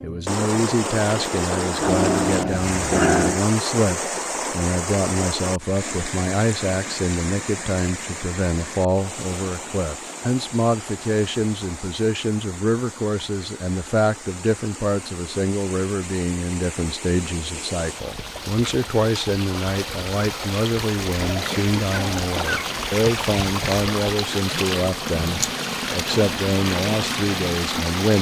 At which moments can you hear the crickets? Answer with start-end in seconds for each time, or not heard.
not heard.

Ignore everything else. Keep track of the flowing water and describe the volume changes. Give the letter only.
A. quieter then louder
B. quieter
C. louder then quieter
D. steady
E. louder
A.